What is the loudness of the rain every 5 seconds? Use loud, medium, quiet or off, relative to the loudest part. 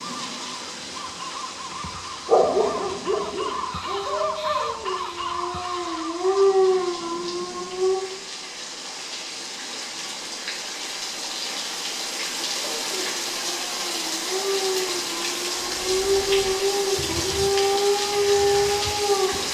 medium, medium, loud, loud.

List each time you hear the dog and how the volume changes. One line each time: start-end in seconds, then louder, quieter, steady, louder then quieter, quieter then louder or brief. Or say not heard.
2.2-8.0 quieter then louder
12.8-19.3 louder.